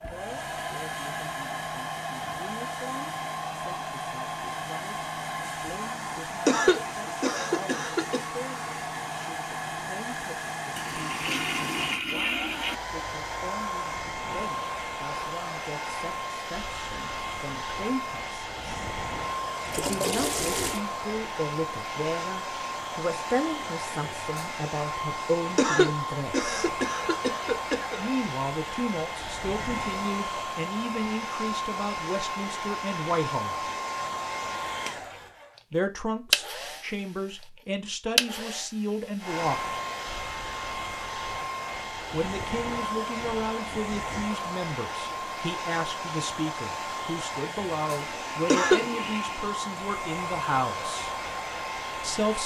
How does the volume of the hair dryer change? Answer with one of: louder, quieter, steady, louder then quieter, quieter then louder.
steady.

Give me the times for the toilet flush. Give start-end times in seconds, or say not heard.
10.8-12.8, 19.6-20.8, 48.1-49.5.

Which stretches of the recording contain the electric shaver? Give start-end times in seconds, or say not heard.
not heard.